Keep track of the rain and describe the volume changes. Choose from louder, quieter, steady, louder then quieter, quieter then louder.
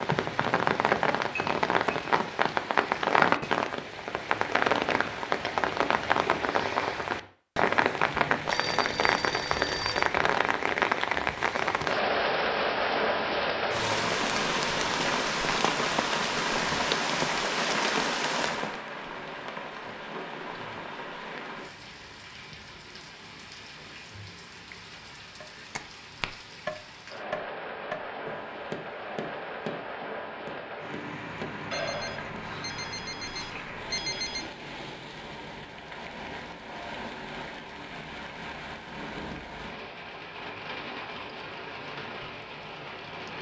quieter.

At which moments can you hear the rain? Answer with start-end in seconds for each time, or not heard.
0.0-43.3.